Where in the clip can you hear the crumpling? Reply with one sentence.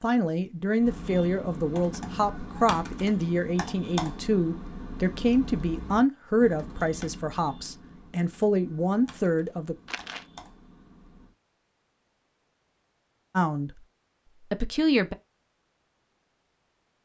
You can hear the crumpling from 9.8 to 10.2 s.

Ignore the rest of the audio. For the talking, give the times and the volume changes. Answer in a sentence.
You can hear the talking from 0.0 to 9.8 s, at a steady volume; and briefly from 13.3 to 15.2 s.